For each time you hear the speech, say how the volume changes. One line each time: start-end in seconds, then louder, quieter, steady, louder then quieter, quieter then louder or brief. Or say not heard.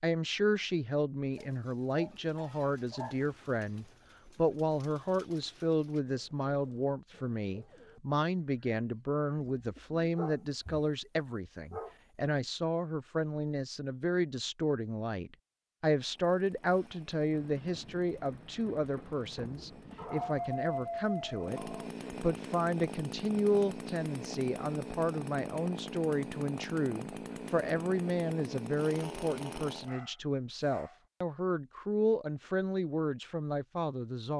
0.0-34.3 steady.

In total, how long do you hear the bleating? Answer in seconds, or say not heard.
not heard.